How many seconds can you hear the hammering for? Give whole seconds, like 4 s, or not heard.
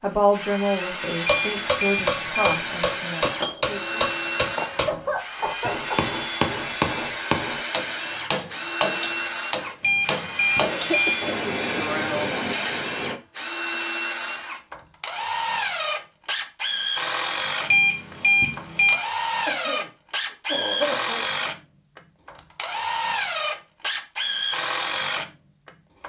12 s.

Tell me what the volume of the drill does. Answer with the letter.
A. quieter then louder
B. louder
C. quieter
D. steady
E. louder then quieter
D.